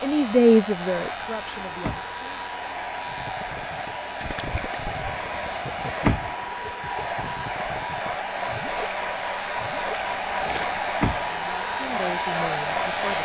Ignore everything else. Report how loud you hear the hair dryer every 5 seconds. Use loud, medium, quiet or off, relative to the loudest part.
medium, loud, loud.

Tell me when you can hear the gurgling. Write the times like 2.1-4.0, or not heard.
3.0-10.7.